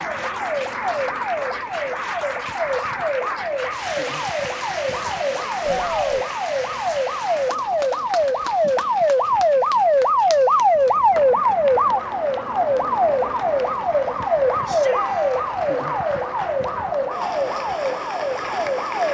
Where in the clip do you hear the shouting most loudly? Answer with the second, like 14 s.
6 s.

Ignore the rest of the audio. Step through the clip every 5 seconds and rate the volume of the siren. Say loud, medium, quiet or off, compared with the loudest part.
medium, loud, loud, medium.